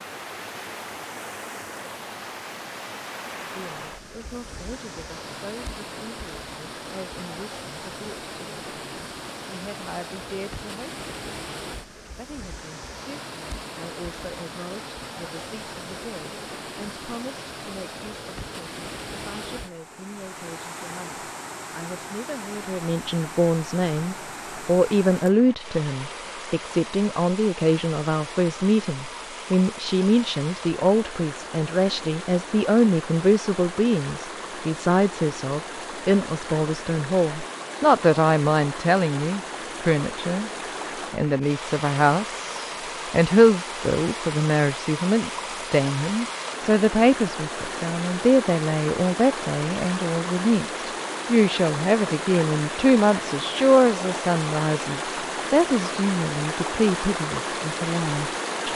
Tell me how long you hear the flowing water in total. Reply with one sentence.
You can hear the flowing water for 59 seconds altogether.